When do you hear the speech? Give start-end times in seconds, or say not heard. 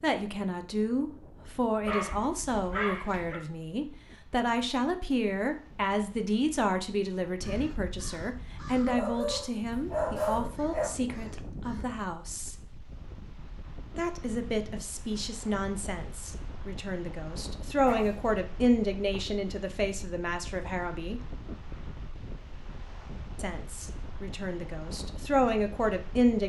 0.0-12.6, 13.9-21.2, 23.4-26.4.